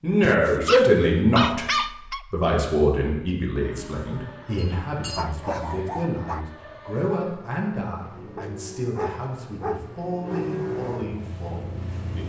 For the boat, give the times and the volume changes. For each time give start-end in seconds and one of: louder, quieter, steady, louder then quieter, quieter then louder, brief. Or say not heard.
3.6-12.2 louder.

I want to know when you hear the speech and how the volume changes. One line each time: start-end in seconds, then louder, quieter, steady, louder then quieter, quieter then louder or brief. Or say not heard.
0.0-1.6 brief
2.3-12.2 quieter.